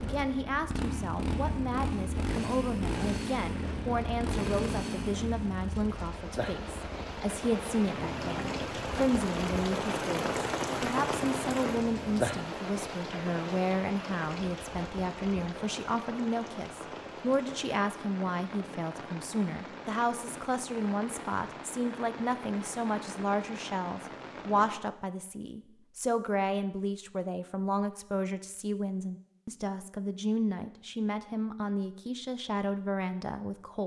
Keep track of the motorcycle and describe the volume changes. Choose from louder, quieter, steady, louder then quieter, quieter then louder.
quieter.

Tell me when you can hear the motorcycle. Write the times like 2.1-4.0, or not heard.
0.0-12.5.